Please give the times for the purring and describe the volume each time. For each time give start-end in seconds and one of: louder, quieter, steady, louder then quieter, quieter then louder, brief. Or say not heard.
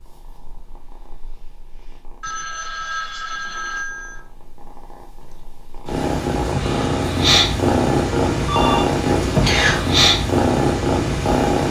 0.0-11.6 louder.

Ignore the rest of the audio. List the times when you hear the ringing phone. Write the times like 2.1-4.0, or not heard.
2.2-4.2, 8.2-8.9.